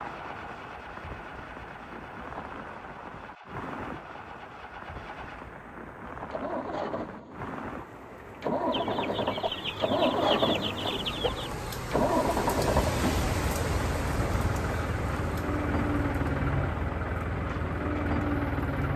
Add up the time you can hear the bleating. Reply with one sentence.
You can't hear the bleating here.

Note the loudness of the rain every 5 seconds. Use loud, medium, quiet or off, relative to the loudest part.
medium, medium, loud, medium.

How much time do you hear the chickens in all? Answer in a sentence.
The chickens can be heard for 3 seconds in total.